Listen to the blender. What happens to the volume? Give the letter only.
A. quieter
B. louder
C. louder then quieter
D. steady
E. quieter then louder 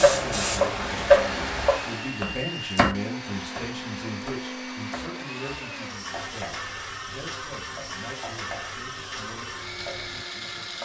D.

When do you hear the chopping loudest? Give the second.
1 s.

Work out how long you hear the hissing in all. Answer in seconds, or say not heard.
2 s.